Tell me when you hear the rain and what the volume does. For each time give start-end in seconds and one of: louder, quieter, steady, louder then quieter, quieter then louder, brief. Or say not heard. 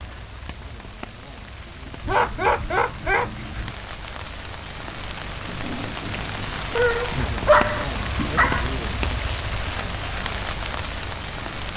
0.0-11.7 louder.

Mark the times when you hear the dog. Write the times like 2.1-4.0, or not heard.
2.0-3.8, 6.8-8.7.